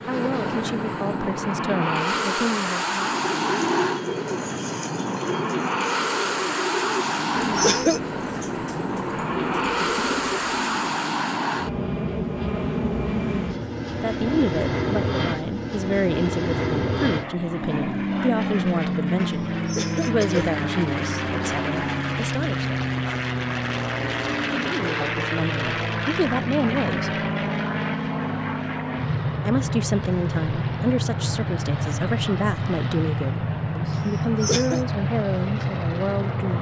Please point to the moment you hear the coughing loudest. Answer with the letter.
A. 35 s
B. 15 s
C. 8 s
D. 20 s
C.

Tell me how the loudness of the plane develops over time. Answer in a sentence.
The volume of the plane stays about the same.